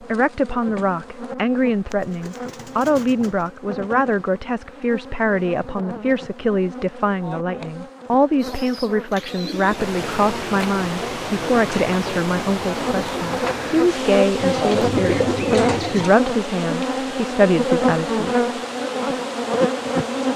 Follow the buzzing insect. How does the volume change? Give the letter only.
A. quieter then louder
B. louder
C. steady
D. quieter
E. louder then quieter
B.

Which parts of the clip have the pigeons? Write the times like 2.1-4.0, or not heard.
1.9-3.5, 8.3-9.8, 14.3-16.2.